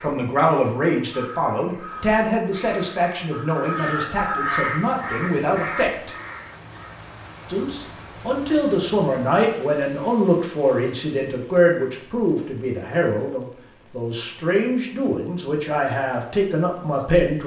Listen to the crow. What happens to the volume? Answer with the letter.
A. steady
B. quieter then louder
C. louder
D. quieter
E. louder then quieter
E.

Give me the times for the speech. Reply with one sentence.
You can hear the speech from 0.0 to 6.1 s and from 7.5 to 17.4 s.